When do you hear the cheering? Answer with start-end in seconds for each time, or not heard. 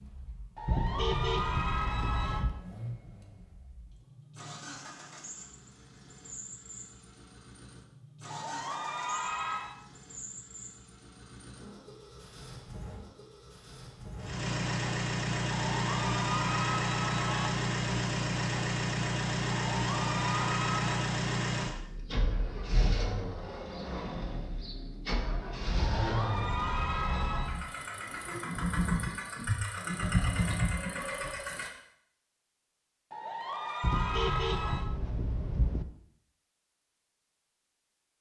0.6-2.5, 8.2-9.8, 15.6-17.5, 19.7-21.1, 25.9-27.6, 33.1-34.9.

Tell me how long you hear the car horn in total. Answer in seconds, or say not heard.
4 s.